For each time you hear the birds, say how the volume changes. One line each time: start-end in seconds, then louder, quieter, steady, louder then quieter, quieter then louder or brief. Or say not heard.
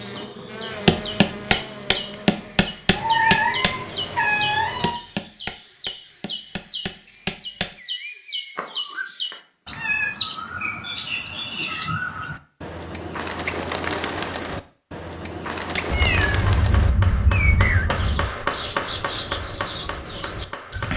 0.0-20.9 steady.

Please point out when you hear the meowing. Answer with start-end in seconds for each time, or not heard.
2.9-4.9, 8.6-10.1, 15.8-18.3.